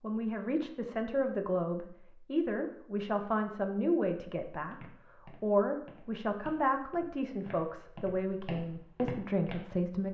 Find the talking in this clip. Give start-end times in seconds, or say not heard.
0.0-10.1.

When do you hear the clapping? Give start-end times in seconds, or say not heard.
not heard.